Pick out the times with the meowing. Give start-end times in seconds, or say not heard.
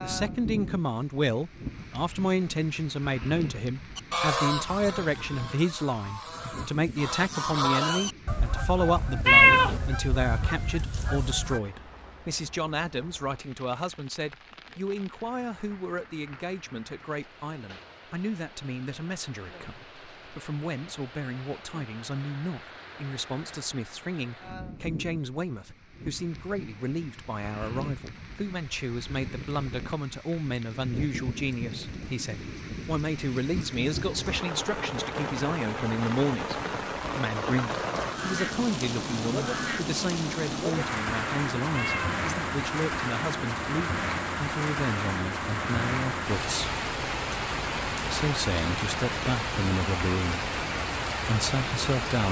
9.2-9.8, 41.7-42.2.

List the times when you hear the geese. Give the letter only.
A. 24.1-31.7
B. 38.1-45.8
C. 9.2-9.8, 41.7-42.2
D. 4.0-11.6
D.